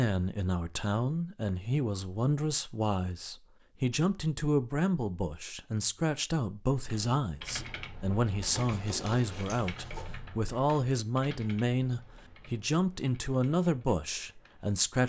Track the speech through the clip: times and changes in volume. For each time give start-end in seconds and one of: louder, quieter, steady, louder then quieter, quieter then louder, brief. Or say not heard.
0.0-15.0 steady.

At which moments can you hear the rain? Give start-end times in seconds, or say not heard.
not heard.